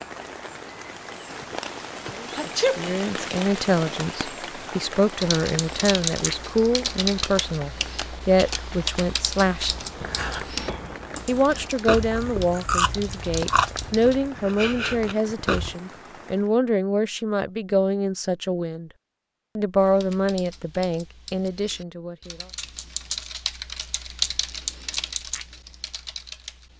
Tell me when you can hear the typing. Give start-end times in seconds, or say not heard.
5.2-14.2, 19.8-26.7.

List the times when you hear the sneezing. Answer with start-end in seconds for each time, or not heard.
2.4-2.8.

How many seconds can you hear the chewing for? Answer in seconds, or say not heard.
6 s.